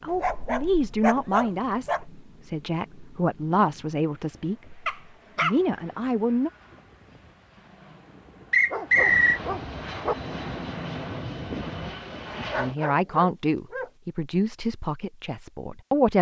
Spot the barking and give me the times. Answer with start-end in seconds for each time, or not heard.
0.1-2.0, 4.8-5.6, 8.7-10.2, 12.5-13.9.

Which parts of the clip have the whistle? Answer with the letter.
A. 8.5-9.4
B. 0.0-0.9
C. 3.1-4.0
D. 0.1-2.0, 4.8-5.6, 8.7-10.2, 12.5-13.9
A.